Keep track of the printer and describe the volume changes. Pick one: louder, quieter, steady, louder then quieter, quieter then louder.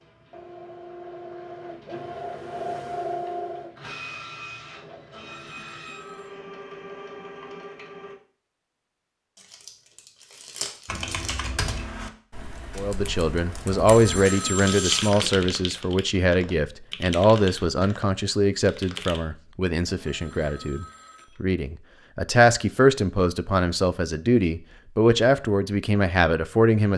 louder then quieter.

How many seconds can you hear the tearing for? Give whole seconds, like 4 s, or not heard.
3 s.